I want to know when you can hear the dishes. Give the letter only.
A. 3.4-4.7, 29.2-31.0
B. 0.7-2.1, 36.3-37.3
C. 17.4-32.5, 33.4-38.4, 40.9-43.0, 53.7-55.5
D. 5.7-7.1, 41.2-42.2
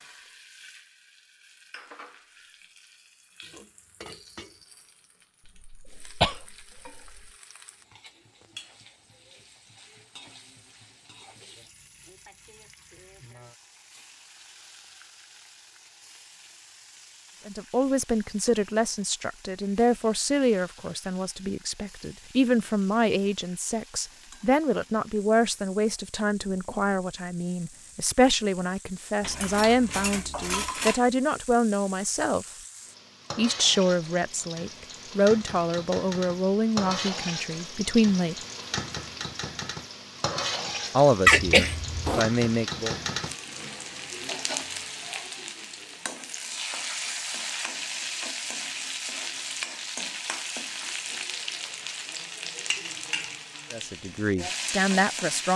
A.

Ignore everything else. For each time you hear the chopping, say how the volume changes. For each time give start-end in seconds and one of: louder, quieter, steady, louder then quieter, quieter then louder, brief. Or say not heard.
not heard.